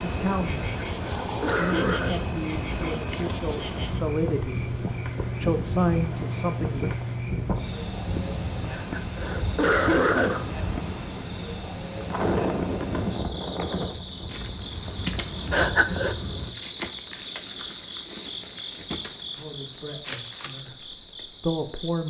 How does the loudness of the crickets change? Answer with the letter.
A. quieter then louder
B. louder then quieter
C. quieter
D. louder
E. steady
E.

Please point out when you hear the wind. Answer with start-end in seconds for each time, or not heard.
0.0-16.6.